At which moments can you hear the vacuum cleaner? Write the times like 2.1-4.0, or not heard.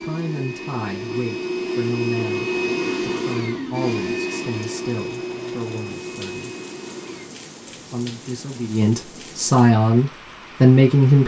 0.0-7.3.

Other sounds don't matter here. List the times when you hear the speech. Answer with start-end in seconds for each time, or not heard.
0.0-6.5, 7.7-11.2.